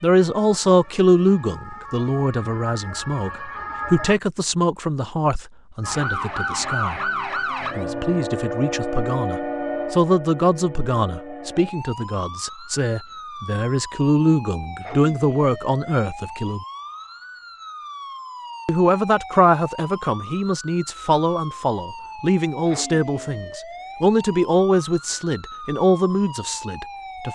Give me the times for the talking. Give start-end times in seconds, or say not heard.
0.0-7.1, 7.8-16.6, 18.6-27.3.